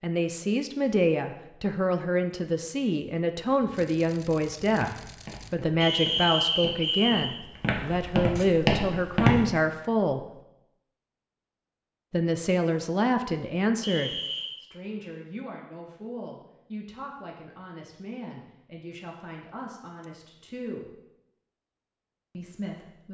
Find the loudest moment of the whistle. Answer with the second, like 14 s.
6 s.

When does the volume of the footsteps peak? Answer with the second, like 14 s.
9 s.